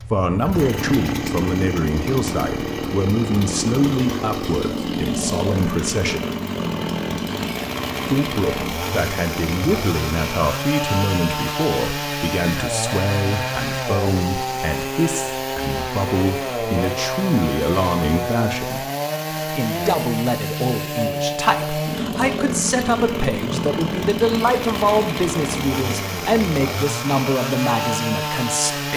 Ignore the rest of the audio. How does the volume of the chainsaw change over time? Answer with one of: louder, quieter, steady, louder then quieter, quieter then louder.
steady.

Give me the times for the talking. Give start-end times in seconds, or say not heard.
0.1-6.2, 8.1-18.9, 19.5-28.9.